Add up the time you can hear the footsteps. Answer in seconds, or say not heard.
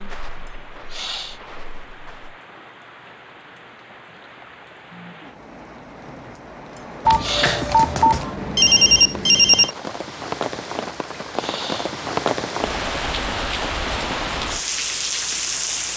2 s.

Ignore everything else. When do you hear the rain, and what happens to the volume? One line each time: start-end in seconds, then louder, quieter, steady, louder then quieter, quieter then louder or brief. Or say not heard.
0.0-15.9 louder.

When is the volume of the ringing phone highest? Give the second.
9 s.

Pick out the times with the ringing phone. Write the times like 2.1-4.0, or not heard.
7.0-9.7.